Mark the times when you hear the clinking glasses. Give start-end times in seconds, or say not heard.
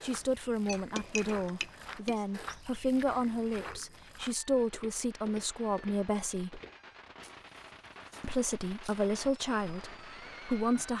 0.7-2.2.